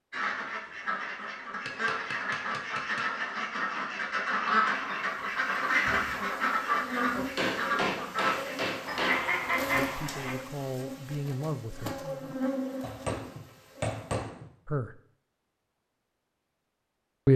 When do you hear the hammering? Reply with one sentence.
The hammering can be heard from 1.5 to 3.1 s, from 7.3 to 9.3 s and from 12.8 to 14.4 s.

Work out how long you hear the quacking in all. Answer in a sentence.
You can hear the quacking for 10 seconds altogether.